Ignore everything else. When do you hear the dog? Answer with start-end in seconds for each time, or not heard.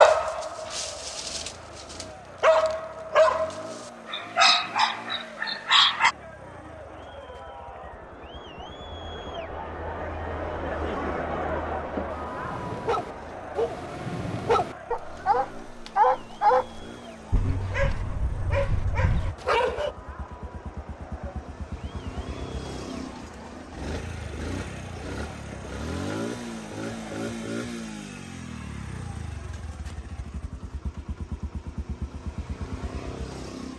0.0-6.2, 12.1-19.9.